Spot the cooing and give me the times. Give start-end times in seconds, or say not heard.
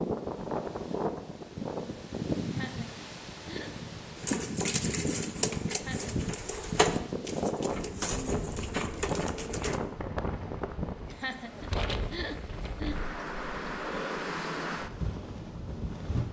4.2-9.8.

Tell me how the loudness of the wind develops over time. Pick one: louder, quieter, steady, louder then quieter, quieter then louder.
steady.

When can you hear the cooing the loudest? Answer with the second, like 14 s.
7 s.